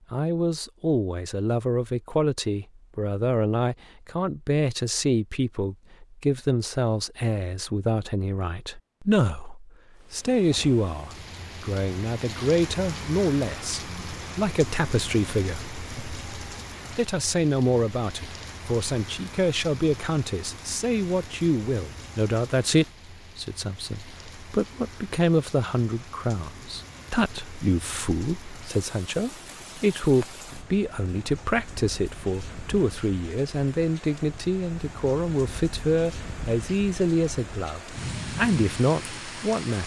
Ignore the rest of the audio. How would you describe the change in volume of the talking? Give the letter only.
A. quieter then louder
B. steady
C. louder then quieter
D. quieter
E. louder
B.